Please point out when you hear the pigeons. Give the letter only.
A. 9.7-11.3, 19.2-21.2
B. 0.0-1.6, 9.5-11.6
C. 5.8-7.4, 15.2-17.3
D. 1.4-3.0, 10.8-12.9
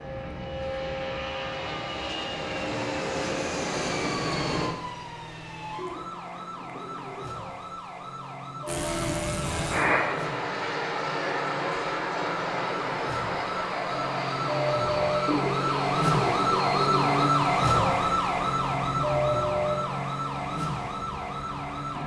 C.